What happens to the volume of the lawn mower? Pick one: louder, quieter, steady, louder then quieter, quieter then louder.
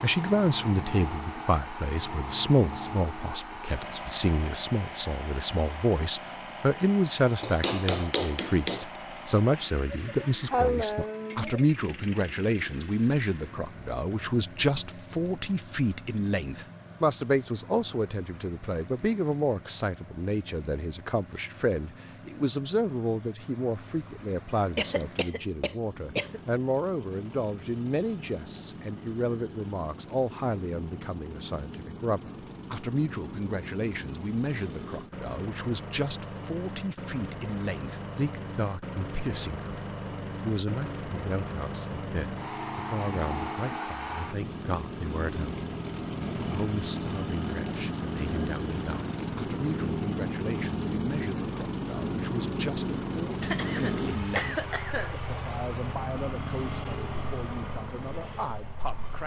quieter then louder.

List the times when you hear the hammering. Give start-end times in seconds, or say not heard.
7.4-9.0.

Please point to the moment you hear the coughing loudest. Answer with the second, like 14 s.
11 s.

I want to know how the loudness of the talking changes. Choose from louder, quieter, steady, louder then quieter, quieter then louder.
quieter.